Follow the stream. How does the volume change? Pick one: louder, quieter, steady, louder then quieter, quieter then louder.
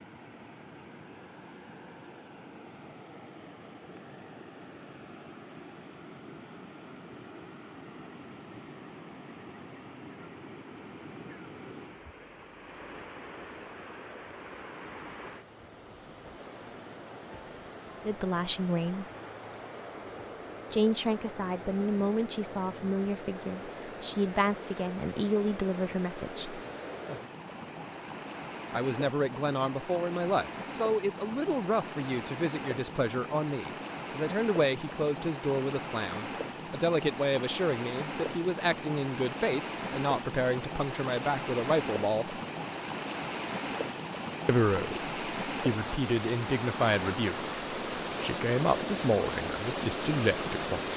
louder.